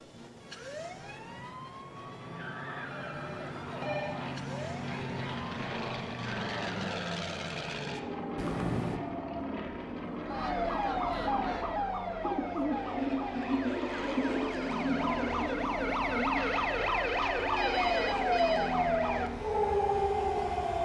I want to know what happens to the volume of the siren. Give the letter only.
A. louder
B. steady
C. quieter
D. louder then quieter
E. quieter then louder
A.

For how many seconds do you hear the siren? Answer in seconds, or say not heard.
21 s.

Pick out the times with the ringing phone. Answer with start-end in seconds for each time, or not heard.
2.9-4.2, 8.3-9.0, 16.2-18.8.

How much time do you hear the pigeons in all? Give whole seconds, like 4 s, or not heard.
5 s.